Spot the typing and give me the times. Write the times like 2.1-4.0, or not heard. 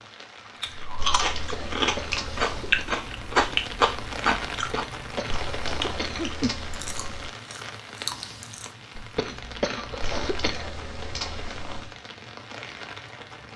0.9-2.9, 5.3-7.3, 10.0-11.9.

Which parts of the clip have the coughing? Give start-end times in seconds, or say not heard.
1.5-2.9, 4.7-6.3, 9.2-10.7.